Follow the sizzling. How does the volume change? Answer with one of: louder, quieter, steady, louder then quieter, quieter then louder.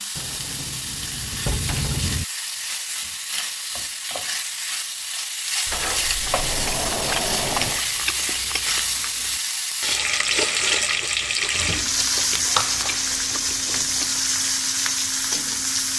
louder.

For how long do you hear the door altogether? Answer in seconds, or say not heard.
5 s.